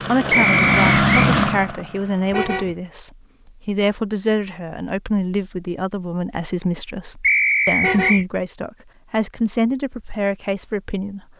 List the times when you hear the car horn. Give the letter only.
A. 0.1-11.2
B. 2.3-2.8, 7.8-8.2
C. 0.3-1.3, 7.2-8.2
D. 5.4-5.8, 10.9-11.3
B.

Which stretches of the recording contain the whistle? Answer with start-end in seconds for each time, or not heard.
0.3-1.3, 7.2-8.2.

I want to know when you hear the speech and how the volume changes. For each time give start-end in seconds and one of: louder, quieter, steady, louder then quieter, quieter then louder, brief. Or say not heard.
0.1-11.2 steady.